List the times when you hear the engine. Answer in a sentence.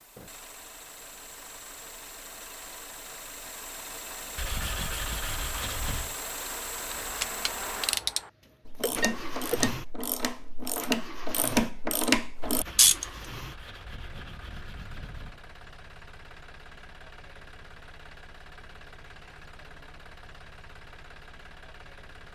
You can hear the engine from 0.0 to 22.3 s.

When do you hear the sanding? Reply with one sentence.
You can hear the sanding from 4.3 to 6.2 s and from 12.4 to 15.4 s.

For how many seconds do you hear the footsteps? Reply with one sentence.
The footsteps can't be heard in this clip.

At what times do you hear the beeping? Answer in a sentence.
You can hear the beeping from 8.8 to 9.7 s.